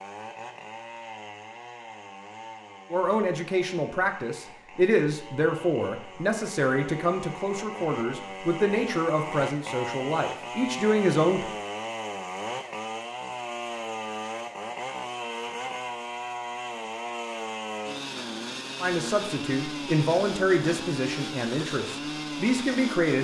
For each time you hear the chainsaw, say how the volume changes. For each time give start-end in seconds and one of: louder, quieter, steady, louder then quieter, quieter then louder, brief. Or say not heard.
0.0-23.1 louder.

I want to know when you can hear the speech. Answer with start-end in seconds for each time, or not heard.
2.9-11.5, 18.8-23.1.